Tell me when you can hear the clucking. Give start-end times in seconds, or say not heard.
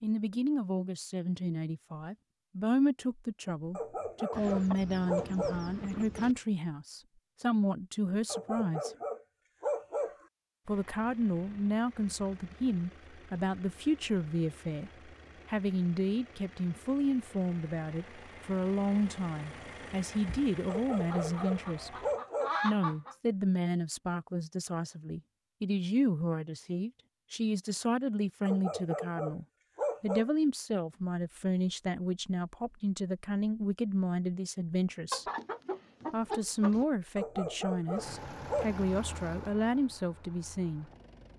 4.3-6.3, 21.1-23.1, 35.1-36.9.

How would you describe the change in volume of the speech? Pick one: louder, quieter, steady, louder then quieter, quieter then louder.
steady.